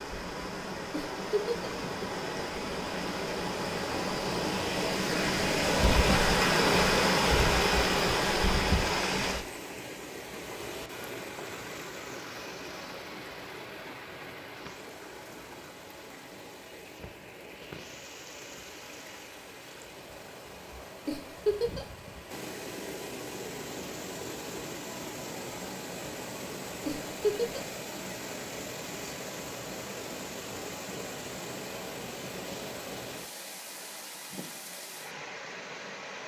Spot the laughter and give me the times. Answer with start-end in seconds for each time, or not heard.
0.9-1.7, 21.1-21.9, 26.9-27.6.